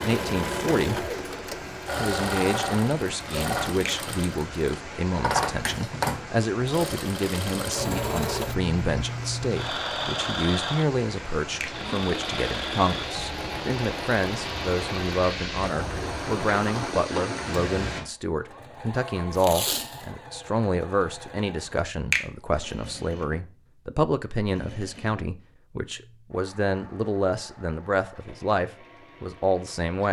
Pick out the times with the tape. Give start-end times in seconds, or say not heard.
19.4-20.1.